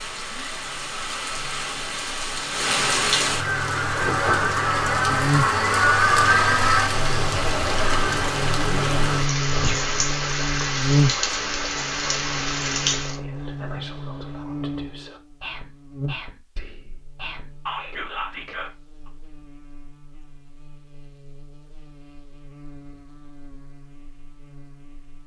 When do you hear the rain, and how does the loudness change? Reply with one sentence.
You can hear the rain from 0.0 to 13.2 s, getting louder then quieter.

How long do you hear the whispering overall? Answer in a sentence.
You can hear the whispering for 9 seconds altogether.